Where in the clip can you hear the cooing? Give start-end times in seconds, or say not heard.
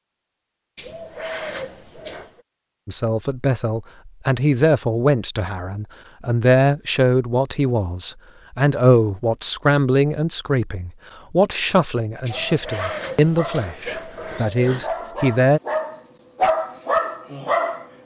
0.8-2.5, 12.2-14.9.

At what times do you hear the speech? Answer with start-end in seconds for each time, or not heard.
2.9-15.6.